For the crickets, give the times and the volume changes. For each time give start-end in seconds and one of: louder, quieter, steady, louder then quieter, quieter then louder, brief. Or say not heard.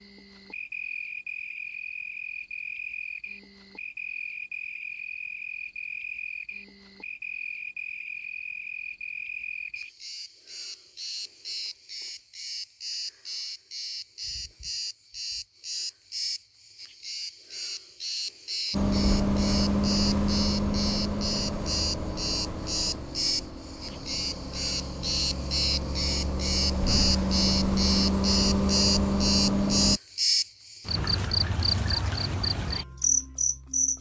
0.0-33.9 louder.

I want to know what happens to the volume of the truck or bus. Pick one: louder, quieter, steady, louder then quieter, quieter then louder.
quieter then louder.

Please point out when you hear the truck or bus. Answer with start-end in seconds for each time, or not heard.
18.7-30.0.